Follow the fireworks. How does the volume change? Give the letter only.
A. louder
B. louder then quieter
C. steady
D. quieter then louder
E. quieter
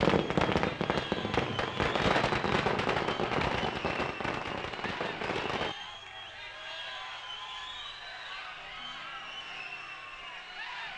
E.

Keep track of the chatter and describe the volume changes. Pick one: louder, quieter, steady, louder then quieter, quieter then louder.
steady.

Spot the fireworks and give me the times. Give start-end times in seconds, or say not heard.
0.0-5.8.